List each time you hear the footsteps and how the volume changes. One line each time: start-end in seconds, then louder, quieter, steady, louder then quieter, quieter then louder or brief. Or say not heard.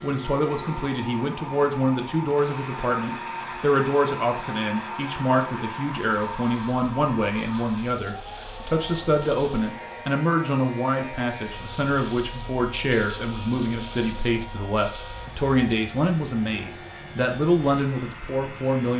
not heard.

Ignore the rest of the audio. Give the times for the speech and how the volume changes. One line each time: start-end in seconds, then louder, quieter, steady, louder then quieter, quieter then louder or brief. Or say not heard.
0.0-18.9 steady.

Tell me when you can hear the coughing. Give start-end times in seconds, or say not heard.
not heard.